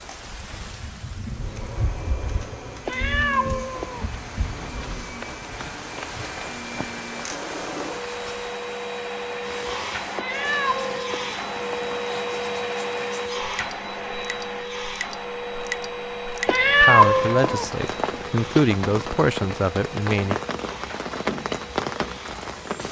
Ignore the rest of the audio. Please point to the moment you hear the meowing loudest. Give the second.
17 s.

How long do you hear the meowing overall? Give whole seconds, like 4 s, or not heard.
5 s.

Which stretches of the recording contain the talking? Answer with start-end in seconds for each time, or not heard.
16.8-20.4.